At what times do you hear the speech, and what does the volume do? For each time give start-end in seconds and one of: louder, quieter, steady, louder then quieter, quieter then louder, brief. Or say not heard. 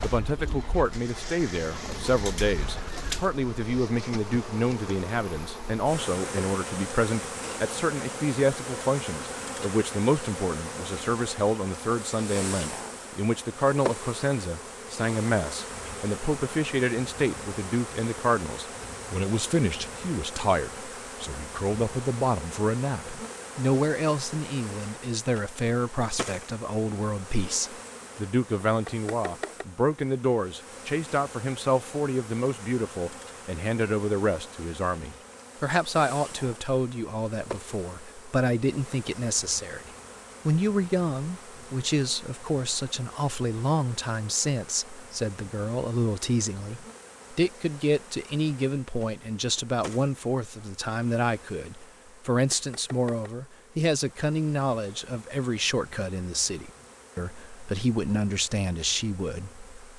0.0-59.7 steady.